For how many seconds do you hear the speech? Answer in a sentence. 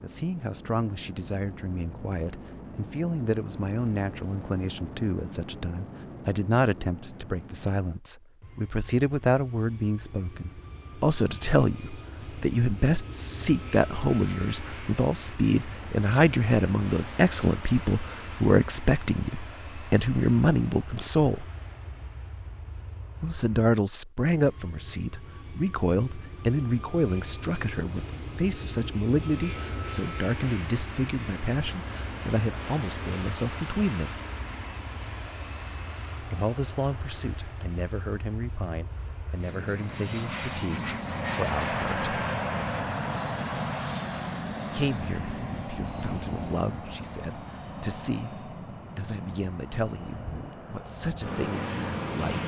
The speech can be heard for 46 seconds in total.